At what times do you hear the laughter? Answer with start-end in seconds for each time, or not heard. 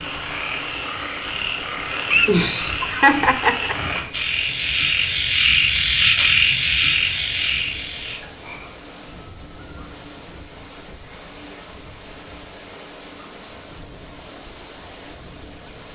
2.1-3.8.